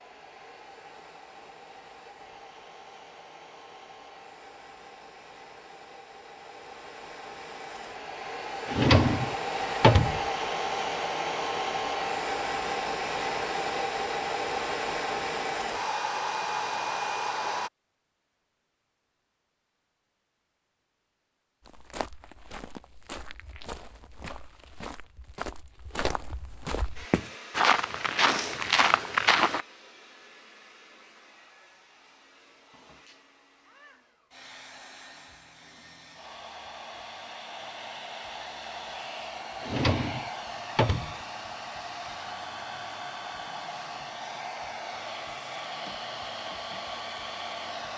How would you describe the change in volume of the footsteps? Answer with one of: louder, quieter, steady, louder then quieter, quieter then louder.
louder.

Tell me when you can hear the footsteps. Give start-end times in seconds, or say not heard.
21.6-29.6.